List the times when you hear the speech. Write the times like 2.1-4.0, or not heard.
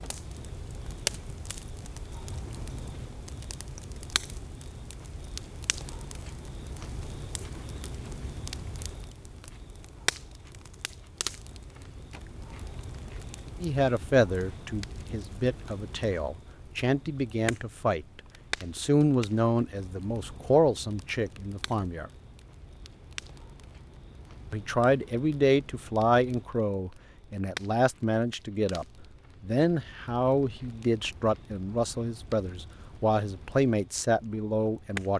13.6-22.1, 24.5-35.1.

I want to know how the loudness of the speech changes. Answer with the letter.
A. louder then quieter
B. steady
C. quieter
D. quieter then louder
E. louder
B.